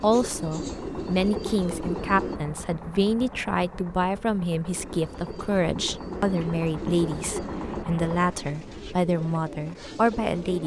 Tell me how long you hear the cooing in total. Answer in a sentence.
The cooing can be heard for 8 seconds in total.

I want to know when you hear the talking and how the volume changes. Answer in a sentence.
The talking can be heard from 0.0 to 10.6 s, at a steady volume.